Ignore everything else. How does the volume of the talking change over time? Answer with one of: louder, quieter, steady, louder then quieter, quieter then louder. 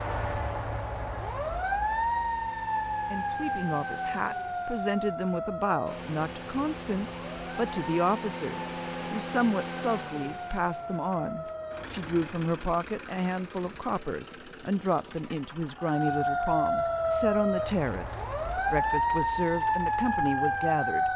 steady.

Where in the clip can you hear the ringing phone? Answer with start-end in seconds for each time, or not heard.
not heard.